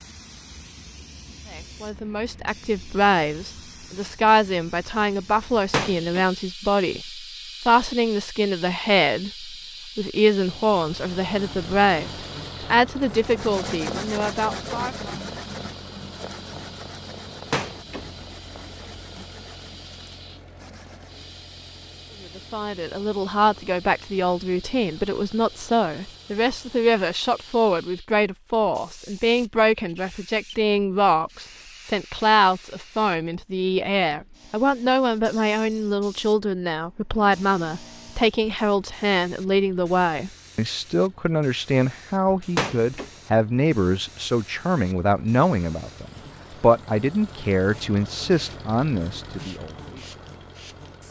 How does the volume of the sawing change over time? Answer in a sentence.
The volume of the sawing goes down.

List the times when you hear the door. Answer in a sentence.
The door can be heard from 5.7 to 6.2 s, from 17.5 to 19.0 s and from 42.5 to 43.1 s.